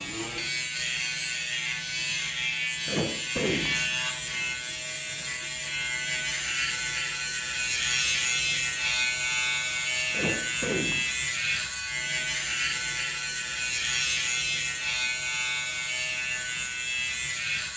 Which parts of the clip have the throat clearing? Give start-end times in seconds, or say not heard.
2.9-4.0, 10.1-11.1.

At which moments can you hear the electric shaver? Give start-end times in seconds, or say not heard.
0.0-17.7.